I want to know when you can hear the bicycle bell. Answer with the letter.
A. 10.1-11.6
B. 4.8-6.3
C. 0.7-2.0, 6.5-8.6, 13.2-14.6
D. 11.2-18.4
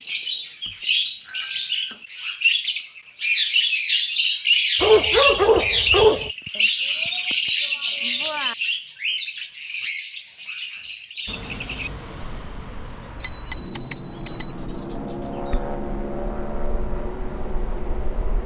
C.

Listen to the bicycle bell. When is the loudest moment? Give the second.
14 s.